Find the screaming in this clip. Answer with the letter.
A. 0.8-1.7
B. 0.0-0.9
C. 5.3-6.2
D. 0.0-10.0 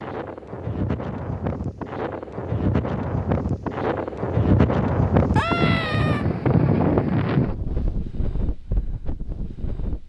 C.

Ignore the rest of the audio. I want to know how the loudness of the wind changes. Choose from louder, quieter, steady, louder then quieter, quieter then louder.
louder then quieter.